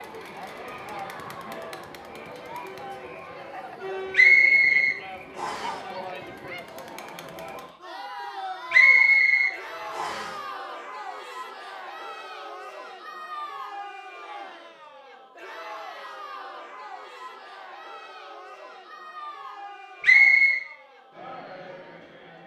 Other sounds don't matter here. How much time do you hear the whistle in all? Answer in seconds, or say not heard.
4 s.